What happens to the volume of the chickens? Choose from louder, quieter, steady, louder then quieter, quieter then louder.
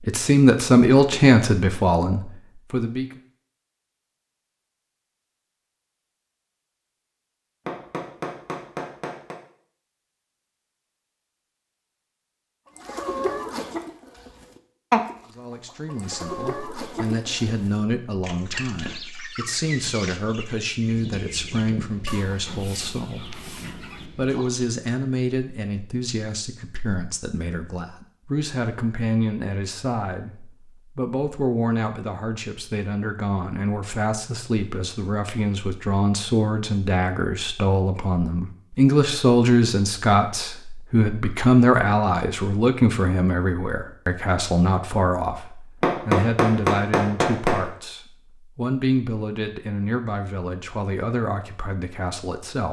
quieter.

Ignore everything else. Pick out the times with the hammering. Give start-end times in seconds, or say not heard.
7.7-9.3, 45.8-47.6.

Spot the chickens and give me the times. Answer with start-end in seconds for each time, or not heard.
12.8-24.7.